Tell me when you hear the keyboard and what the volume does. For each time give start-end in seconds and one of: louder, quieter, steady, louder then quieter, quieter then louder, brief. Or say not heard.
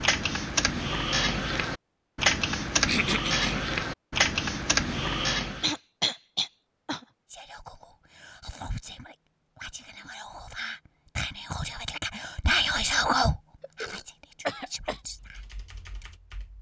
0.0-5.8 steady
15.1-16.5 brief.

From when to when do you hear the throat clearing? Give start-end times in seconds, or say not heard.
2.9-3.5, 5.6-7.0, 13.6-15.0.